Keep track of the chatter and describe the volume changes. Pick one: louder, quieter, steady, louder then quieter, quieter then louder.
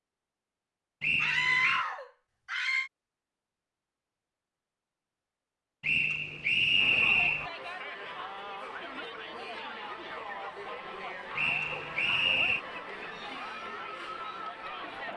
steady.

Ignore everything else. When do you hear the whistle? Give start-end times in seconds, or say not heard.
1.0-1.9, 5.8-7.5, 11.3-12.7.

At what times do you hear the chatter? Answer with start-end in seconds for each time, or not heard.
6.8-15.1.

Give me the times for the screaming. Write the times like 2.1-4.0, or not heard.
1.2-2.9.